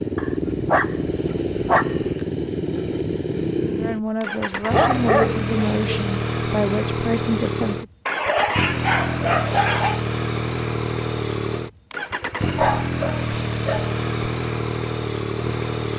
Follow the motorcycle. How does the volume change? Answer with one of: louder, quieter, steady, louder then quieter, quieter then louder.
steady.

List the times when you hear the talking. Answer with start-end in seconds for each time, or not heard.
3.8-7.8.